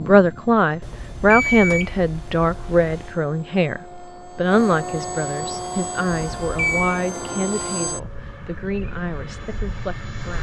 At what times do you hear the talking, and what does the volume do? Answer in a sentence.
You can hear the talking from 0.0 to 10.3 s, getting quieter.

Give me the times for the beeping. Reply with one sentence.
You can hear the beeping from 0.8 to 3.1 s and from 6.1 to 7.0 s.